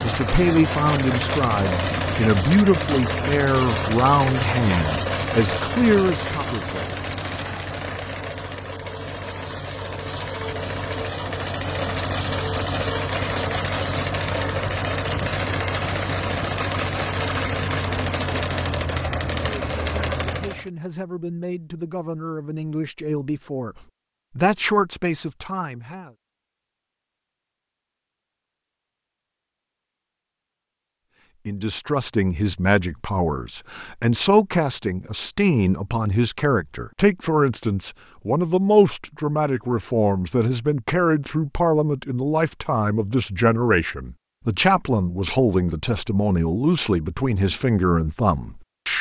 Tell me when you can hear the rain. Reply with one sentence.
You can't hear the rain here.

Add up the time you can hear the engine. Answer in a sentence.
The engine can be heard for 21 seconds in total.